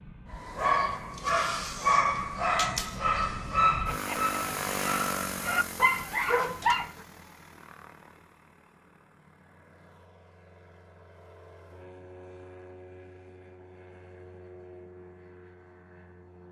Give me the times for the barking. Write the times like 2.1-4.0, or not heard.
0.3-6.9.